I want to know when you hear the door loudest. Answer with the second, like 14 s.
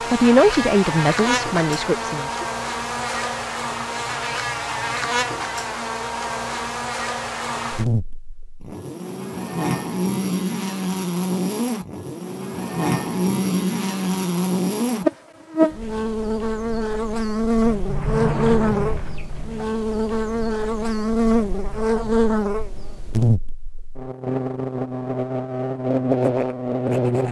18 s.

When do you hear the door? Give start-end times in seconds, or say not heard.
17.6-19.6.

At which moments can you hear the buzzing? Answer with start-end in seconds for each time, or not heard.
0.0-27.2.